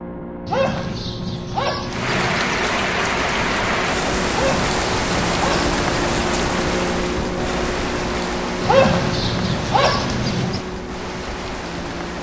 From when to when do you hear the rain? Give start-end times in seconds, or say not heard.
1.9-12.1.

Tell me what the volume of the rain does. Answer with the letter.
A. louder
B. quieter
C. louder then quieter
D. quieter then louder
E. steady
B.